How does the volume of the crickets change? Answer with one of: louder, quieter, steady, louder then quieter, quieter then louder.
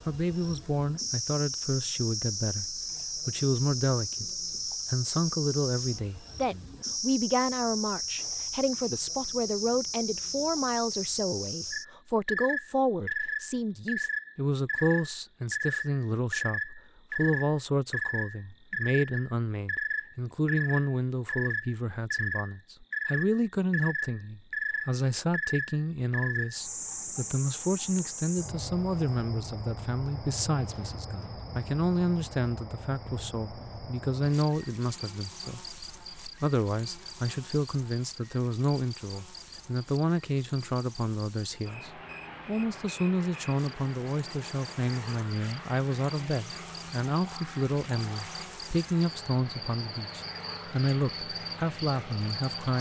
quieter.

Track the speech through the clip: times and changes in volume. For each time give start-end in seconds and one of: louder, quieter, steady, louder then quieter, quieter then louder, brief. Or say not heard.
0.1-4.3 quieter then louder
4.9-52.7 steady.